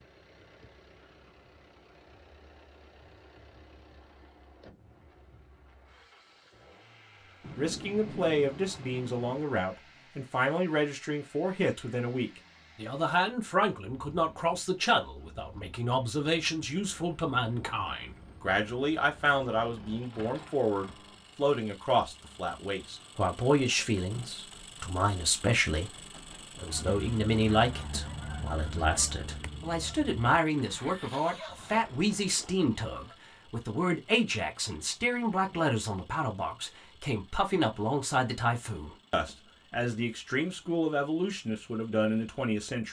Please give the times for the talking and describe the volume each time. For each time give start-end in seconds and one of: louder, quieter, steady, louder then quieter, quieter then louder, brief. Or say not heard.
7.5-42.8 steady.